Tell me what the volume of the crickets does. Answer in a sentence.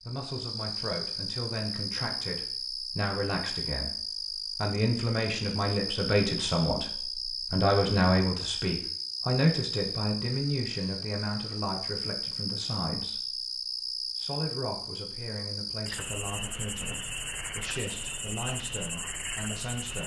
The volume of the crickets stays about the same.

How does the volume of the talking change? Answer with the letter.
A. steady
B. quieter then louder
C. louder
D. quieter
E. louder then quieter
E.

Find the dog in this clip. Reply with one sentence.
The dog can't be heard in this clip.